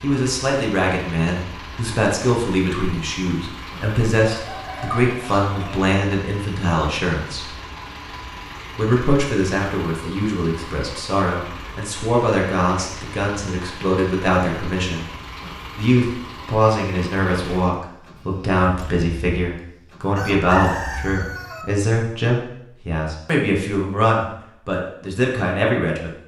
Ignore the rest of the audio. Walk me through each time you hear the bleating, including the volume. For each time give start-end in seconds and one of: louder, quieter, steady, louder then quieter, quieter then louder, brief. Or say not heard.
not heard.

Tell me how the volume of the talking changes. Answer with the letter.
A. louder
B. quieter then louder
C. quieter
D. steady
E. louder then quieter
D.